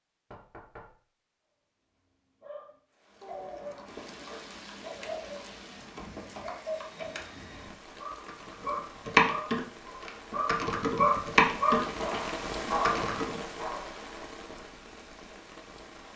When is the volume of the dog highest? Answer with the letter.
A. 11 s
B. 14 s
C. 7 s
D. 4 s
A.